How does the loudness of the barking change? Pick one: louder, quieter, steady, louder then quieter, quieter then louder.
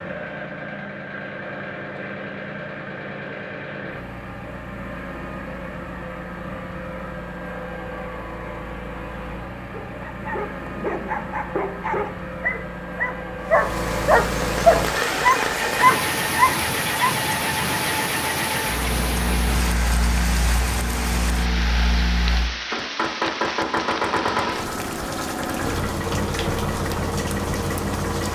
louder.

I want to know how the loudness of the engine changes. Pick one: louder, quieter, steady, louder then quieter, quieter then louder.
louder.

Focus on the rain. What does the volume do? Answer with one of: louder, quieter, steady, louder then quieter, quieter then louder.
quieter.